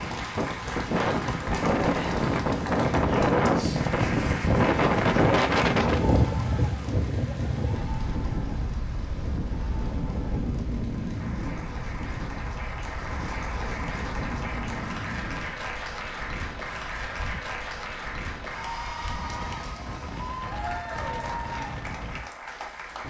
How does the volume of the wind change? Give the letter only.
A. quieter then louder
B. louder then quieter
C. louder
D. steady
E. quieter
E.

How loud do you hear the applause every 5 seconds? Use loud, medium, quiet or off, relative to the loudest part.
loud, medium, loud, loud, loud.